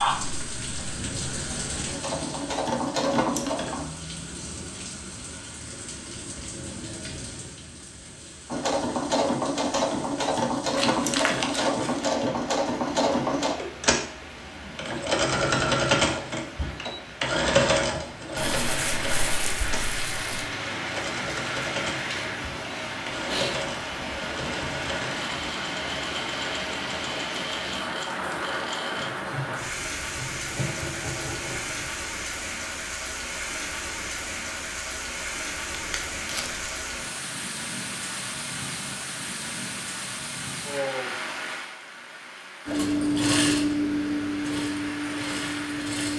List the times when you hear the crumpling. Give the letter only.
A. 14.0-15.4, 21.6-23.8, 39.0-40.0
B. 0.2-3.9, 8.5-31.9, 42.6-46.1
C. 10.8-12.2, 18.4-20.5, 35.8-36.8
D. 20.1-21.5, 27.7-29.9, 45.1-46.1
C.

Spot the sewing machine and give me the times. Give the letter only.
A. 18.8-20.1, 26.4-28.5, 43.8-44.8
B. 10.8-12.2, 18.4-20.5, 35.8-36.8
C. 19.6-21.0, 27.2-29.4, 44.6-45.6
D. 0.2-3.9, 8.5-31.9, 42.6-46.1
D.